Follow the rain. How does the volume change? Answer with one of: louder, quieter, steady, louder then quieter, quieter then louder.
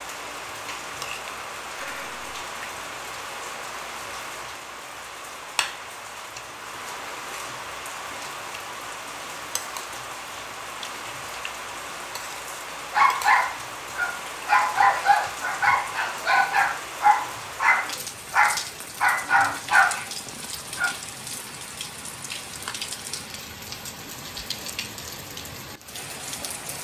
steady.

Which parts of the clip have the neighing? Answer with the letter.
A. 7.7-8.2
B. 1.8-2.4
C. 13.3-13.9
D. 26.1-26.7
B.